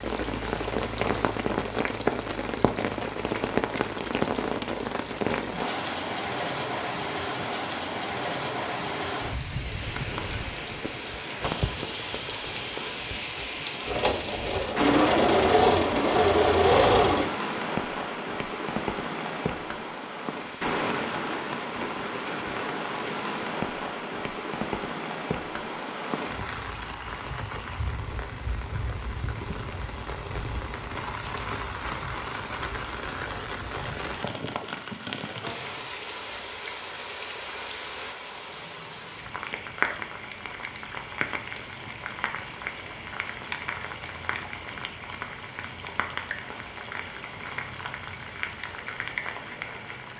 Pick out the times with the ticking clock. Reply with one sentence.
You can't hear the ticking clock here.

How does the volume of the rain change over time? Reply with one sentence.
The volume of the rain goes down.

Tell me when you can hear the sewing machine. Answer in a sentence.
The sewing machine can be heard from 13.8 to 17.3 s.